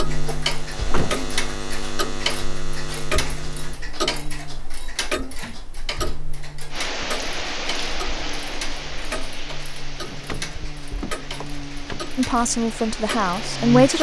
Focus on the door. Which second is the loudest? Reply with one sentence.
The loudest moment of the door is at 1 second.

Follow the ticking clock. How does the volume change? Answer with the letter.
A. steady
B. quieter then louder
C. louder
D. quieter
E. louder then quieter
D.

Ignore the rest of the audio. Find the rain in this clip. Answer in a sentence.
You can hear the rain from 6.7 to 13.9 s.